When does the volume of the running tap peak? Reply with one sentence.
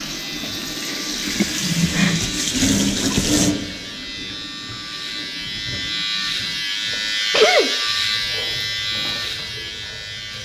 The loudest moment of the running tap is at 3 seconds.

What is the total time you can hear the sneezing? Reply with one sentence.
You can hear the sneezing for 3 seconds altogether.